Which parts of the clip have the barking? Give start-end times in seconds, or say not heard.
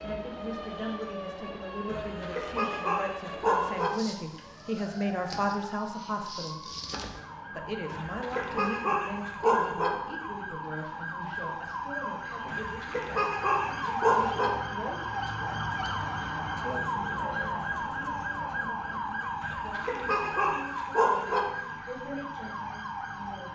1.9-3.9, 7.9-9.9, 12.5-14.5, 19.4-21.4.